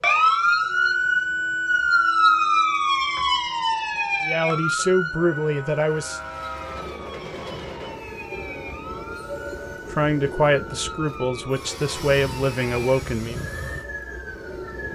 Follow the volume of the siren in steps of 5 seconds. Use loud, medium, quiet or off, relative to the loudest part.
loud, quiet, quiet.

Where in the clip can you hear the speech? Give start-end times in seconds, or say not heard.
4.2-6.2, 9.9-13.3.